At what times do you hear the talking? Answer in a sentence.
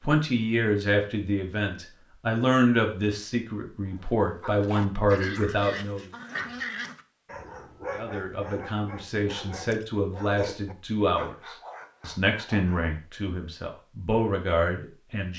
The talking can be heard from 0.0 to 6.0 s and from 7.9 to 15.3 s.